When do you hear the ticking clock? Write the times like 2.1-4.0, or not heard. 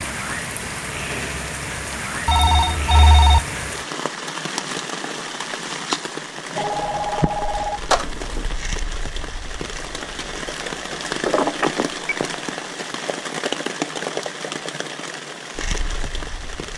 not heard.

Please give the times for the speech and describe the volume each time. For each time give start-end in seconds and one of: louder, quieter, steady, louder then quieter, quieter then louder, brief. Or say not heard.
not heard.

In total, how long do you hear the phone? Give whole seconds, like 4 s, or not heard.
4 s.